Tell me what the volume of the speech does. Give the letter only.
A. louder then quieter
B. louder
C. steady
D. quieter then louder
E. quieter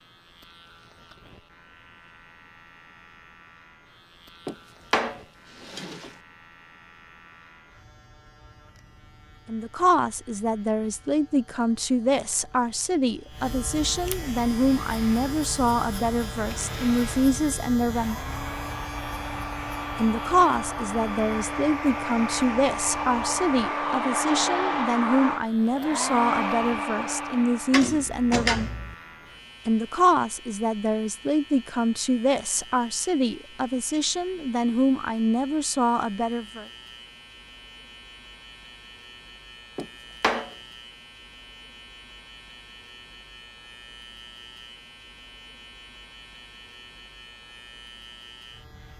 C.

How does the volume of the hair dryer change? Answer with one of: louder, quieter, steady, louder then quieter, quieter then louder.
louder.